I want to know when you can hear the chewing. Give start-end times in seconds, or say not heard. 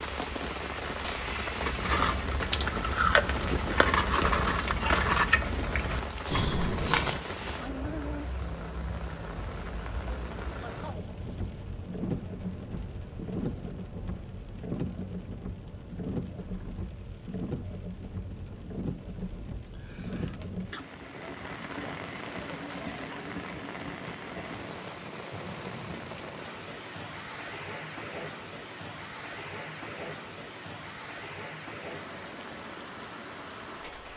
1.6-7.2.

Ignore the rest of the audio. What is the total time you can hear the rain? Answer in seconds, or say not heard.
34 s.